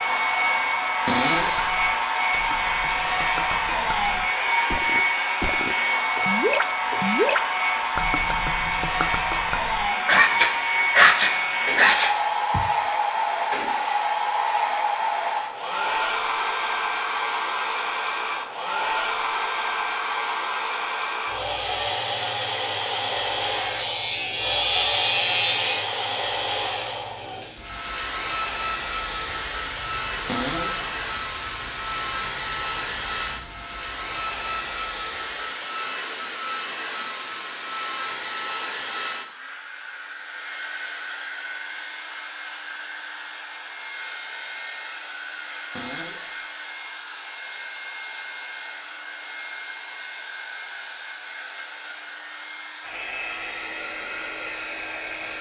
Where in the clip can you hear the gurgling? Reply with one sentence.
The gurgling can be heard from 1.4 to 9.9 s.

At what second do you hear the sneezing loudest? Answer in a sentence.
The loudest moment of the sneezing is at 11 seconds.